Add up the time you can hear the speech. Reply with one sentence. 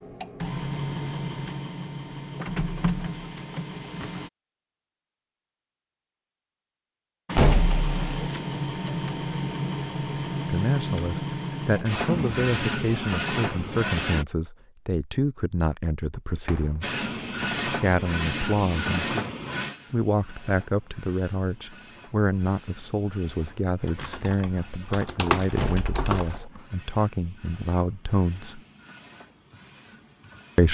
The speech can be heard for 17 seconds in total.